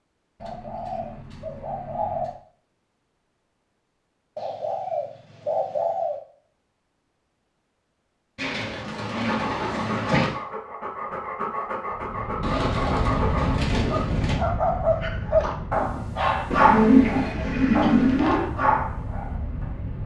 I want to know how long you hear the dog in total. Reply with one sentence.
The dog can be heard for 11 seconds in total.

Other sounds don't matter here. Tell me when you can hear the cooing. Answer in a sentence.
You can hear the cooing from 0.4 to 2.4 s, from 4.3 to 6.2 s, from 8.3 to 10.3 s, from 12.4 to 14.4 s and from 16.5 to 18.5 s.